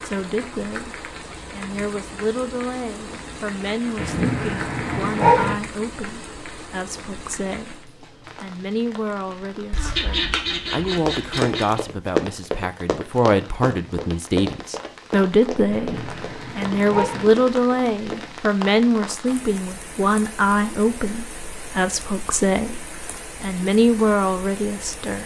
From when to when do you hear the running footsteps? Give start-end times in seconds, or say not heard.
10.9-18.3.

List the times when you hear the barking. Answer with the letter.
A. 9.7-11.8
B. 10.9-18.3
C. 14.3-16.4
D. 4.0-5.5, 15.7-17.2
D.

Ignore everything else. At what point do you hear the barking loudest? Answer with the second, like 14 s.
5 s.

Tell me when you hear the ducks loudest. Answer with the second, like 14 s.
10 s.